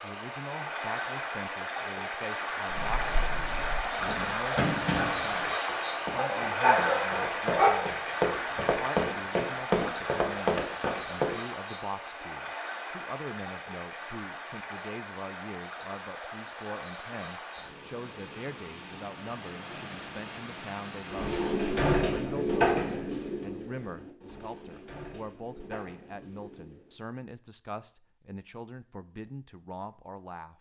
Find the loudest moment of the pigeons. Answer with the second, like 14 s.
23 s.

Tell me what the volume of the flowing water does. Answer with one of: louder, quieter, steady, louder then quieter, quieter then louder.
quieter.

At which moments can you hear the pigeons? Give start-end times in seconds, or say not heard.
21.1-27.0.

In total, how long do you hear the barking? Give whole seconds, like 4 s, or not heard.
2 s.